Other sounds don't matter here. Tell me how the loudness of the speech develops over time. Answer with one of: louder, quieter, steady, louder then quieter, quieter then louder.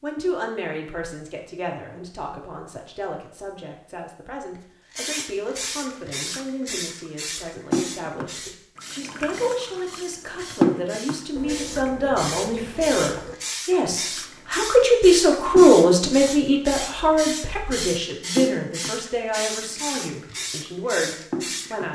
louder then quieter.